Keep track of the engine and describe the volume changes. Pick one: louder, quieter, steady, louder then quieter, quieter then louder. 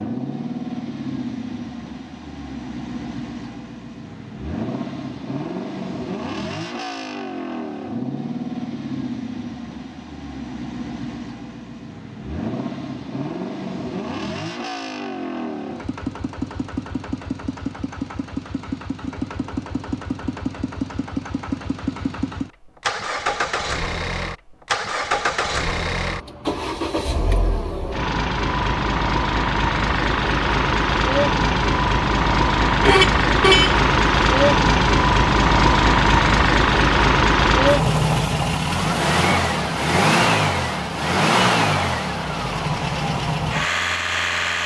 louder.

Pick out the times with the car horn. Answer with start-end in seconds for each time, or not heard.
32.8-33.8.